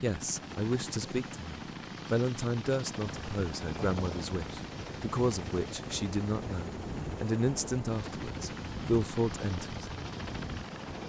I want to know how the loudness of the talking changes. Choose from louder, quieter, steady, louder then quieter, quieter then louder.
steady.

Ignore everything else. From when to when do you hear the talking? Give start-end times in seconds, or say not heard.
0.0-9.9.